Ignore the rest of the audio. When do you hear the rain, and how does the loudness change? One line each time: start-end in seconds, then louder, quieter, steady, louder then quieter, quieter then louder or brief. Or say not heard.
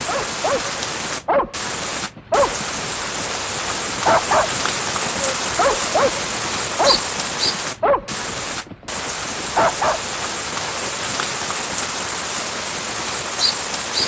0.0-14.0 steady.